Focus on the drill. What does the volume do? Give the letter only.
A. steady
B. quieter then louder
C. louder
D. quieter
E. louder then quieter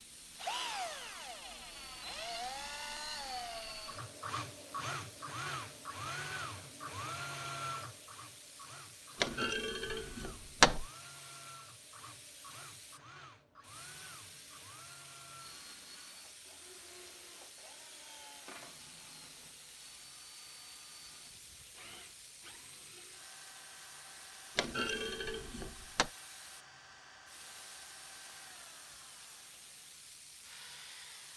D.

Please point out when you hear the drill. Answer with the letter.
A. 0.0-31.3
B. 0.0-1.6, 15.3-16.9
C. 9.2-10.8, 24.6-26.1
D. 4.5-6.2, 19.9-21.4
A.